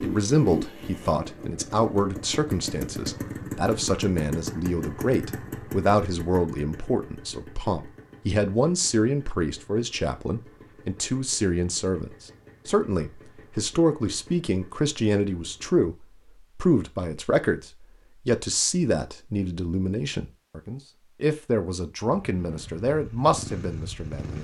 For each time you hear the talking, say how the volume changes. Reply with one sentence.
You can hear the talking from 0.0 to 24.3 s, at a steady volume.